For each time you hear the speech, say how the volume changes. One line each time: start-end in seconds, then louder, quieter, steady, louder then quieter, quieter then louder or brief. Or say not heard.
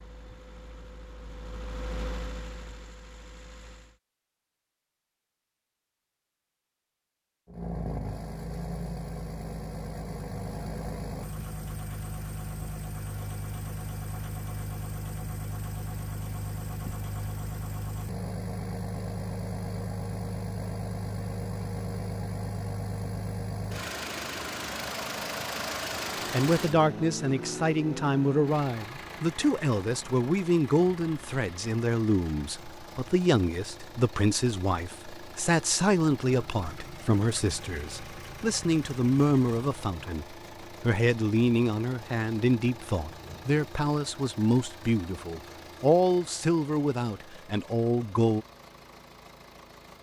26.3-48.5 steady.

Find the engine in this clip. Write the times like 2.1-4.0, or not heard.
0.0-4.0, 7.5-49.9.